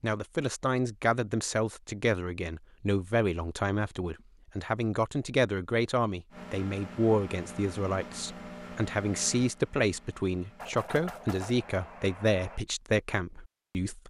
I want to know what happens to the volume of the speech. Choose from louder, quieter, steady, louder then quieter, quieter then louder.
steady.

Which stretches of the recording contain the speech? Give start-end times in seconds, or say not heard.
0.0-14.0.